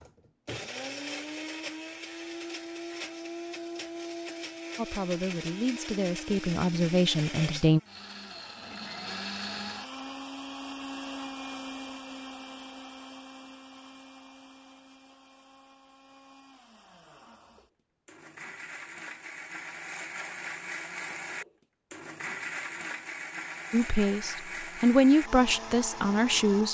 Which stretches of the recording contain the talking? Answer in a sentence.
The talking can be heard from 4.8 to 7.8 s and from 23.7 to 26.6 s.